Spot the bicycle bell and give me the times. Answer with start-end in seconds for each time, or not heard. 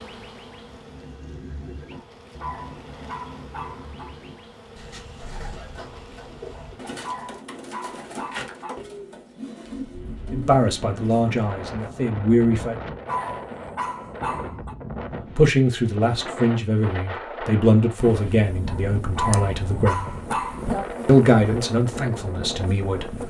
not heard.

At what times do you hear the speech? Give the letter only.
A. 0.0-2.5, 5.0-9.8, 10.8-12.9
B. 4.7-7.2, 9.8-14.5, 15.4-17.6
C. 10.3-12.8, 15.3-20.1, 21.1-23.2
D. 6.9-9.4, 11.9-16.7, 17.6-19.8
C.